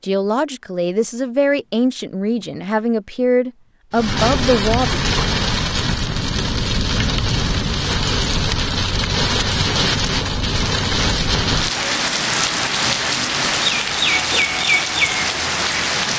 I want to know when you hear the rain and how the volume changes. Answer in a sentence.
The rain can be heard from 3.9 to 16.1 s, at a steady volume.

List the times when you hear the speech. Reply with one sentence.
The speech can be heard from 0.0 to 4.8 s.